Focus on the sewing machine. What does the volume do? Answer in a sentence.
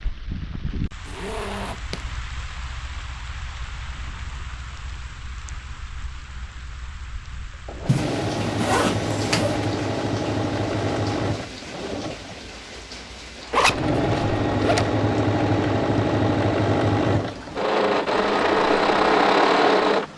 The volume of the sewing machine goes up.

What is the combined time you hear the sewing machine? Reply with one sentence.
The sewing machine can be heard for 13 seconds in total.